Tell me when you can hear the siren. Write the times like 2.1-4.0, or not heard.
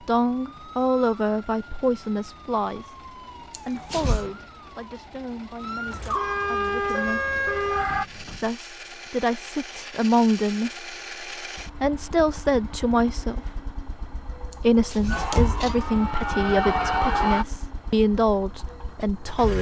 0.0-8.1, 15.1-17.4.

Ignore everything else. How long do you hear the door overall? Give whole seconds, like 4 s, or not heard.
3 s.